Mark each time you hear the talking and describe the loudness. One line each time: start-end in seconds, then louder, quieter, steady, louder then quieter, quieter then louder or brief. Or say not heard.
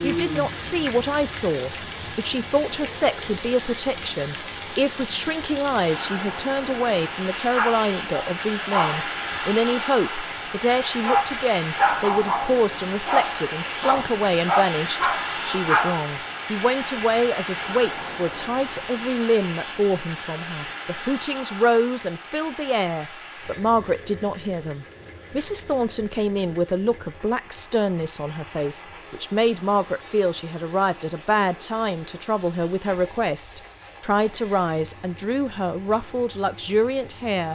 0.0-37.5 steady.